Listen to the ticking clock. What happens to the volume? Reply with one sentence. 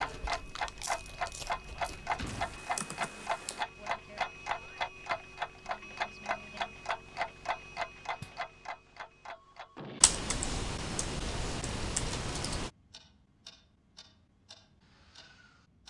The loudness of the ticking clock goes down.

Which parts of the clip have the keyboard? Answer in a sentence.
You can hear the keyboard from 2.3 to 3.6 s and from 10.0 to 12.7 s.